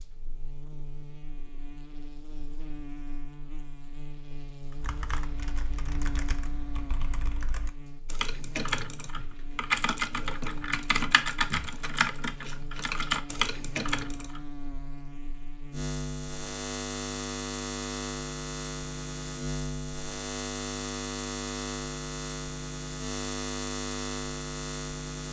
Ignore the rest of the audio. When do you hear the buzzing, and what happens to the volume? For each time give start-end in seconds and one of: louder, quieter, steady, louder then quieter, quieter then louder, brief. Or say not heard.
0.0-25.2 louder.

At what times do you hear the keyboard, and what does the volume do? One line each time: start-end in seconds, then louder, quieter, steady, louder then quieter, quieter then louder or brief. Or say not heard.
4.7-14.4 louder.